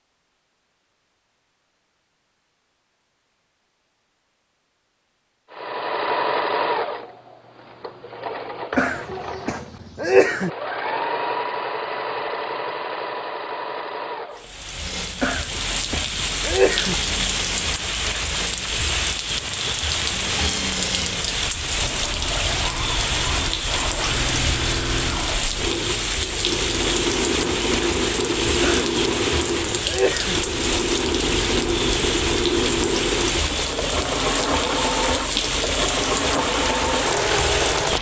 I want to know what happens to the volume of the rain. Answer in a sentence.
The volume of the rain stays about the same.